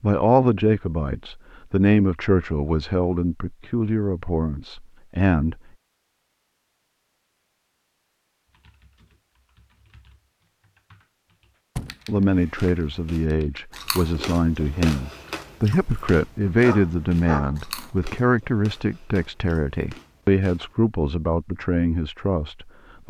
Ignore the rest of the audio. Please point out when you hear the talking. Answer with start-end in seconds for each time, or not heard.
0.0-5.5, 12.1-23.0.